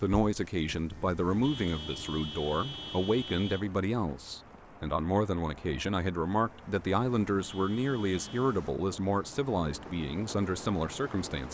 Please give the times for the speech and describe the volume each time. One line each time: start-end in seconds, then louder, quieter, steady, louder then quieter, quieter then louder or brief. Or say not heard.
0.0-11.4 steady.